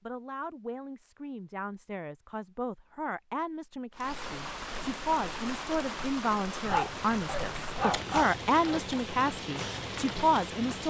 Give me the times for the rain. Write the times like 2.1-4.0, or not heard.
3.9-10.8.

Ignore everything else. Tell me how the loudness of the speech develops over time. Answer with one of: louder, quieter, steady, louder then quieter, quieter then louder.
louder.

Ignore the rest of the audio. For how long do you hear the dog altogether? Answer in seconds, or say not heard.
2 s.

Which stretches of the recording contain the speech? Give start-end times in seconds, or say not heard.
0.0-10.8.